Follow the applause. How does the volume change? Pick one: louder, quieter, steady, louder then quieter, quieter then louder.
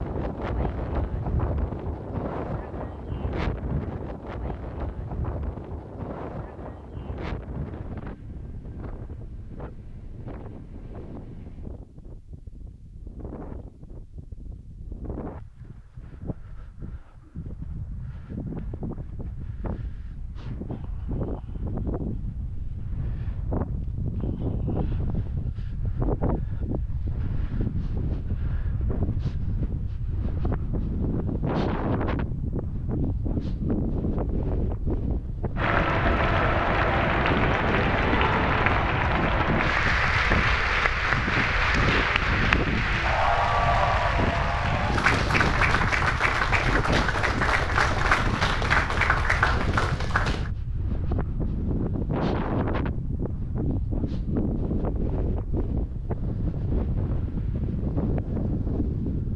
steady.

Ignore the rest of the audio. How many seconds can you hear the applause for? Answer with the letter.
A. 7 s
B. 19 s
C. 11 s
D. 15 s
D.